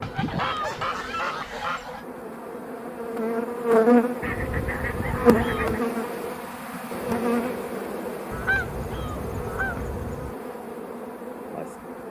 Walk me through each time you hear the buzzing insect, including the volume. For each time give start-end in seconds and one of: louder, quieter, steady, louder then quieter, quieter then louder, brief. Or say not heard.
0.0-12.0 louder then quieter.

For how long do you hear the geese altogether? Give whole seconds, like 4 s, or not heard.
6 s.